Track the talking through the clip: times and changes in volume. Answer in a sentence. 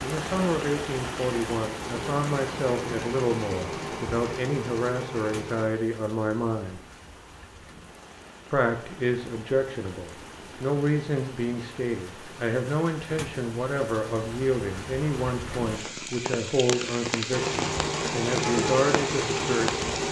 The talking can be heard from 0.0 to 6.8 s, at a steady volume; and from 8.5 to 19.9 s, at a steady volume.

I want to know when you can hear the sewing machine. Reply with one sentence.
You can hear the sewing machine from 1.8 to 5.7 s and from 17.3 to 20.0 s.